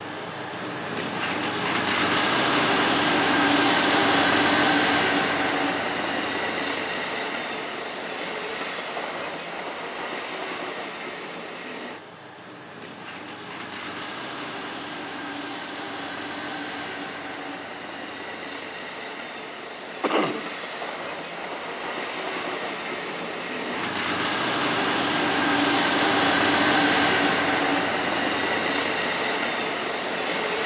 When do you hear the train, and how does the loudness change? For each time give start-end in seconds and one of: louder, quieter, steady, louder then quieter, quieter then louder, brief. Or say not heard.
0.0-30.6 quieter then louder.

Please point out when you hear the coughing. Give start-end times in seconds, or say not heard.
20.0-20.9.